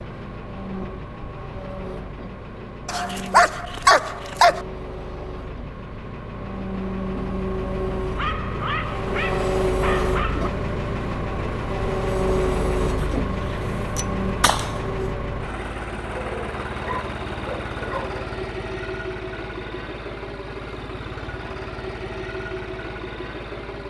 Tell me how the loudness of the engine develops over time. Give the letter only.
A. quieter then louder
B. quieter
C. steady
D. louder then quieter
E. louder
D.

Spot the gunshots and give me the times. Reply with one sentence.
The gunshots can be heard from 12.9 to 14.9 s.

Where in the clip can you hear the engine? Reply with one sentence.
You can hear the engine from 0.0 to 23.8 s.